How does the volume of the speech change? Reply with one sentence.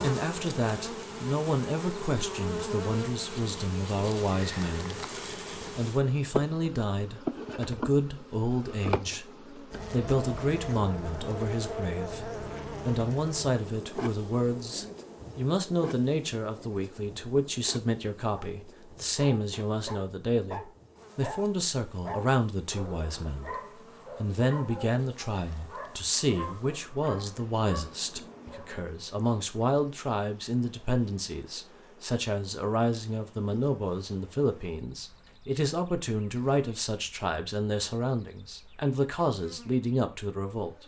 The loudness of the speech stays about the same.